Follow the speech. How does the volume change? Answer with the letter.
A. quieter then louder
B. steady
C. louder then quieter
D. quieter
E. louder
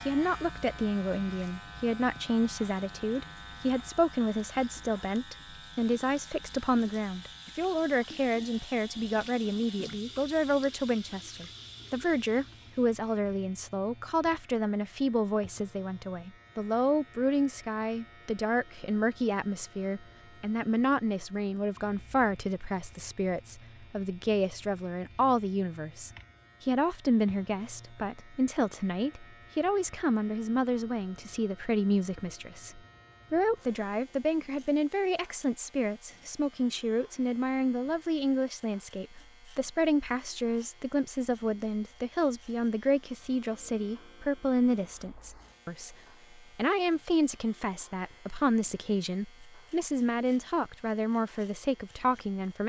B.